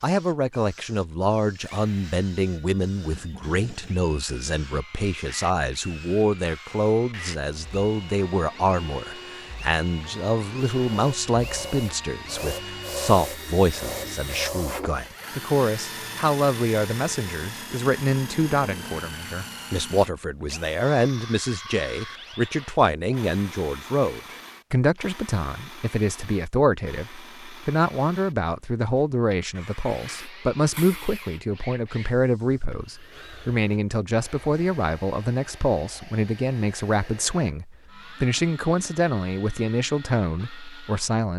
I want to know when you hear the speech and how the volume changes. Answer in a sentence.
You can hear the speech from 0.0 to 41.3 s, at a steady volume.